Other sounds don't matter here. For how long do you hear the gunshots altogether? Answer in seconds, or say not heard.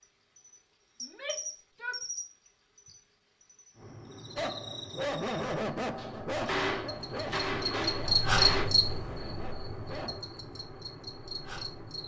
3 s.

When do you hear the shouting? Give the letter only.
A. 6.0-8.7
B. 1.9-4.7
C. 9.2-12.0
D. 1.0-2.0
D.